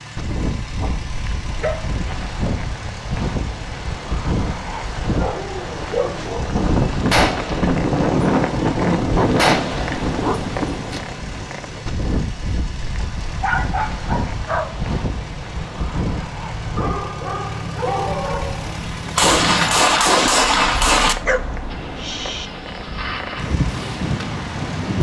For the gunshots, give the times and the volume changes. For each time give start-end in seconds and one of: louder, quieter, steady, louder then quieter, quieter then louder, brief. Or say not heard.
6.5-11.0 quieter
19.1-21.1 brief.